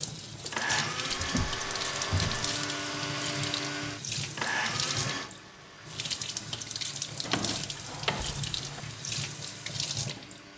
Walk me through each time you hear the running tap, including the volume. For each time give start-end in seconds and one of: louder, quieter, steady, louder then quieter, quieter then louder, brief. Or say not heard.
0.0-10.5 steady.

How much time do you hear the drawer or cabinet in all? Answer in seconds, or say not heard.
3 s.